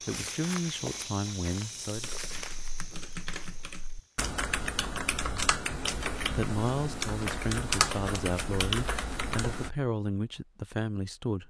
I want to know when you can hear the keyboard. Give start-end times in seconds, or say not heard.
1.9-9.7.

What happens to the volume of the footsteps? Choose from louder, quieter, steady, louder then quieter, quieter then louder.
quieter.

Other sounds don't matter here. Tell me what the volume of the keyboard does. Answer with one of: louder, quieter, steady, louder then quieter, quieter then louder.
louder.